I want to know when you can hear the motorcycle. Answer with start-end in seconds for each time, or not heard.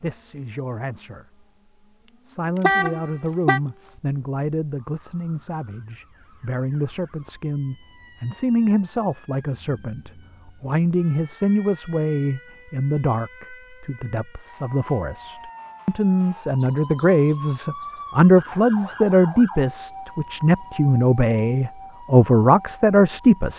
not heard.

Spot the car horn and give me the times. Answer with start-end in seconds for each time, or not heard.
2.6-3.6.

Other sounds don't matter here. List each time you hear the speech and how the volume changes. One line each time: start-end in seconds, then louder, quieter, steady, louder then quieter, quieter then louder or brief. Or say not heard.
0.0-1.4 brief
2.2-23.5 louder.